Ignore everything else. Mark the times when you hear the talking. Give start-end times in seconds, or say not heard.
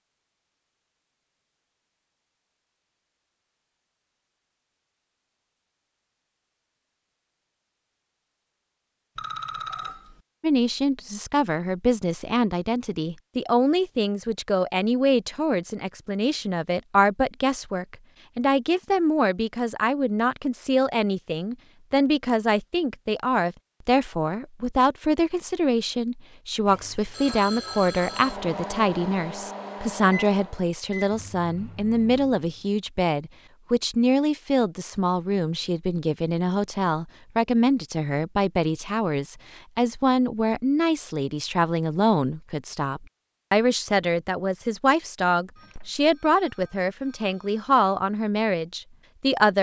10.4-49.5.